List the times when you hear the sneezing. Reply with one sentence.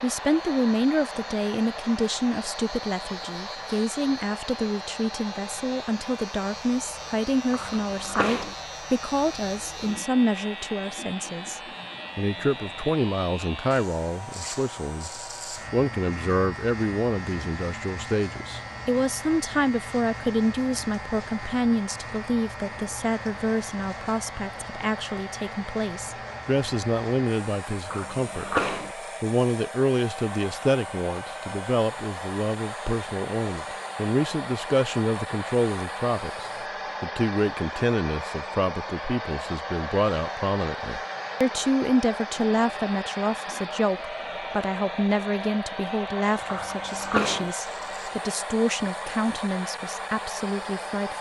You can hear the sneezing from 7.5 to 8.6 s, from 27.9 to 28.9 s and from 46.5 to 47.5 s.